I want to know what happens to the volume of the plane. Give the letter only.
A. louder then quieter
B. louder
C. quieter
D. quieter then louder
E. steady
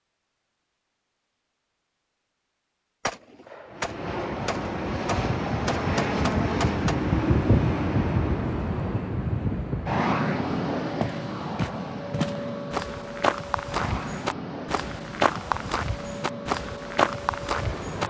C.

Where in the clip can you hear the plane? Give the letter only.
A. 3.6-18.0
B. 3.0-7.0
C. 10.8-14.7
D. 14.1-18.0
A.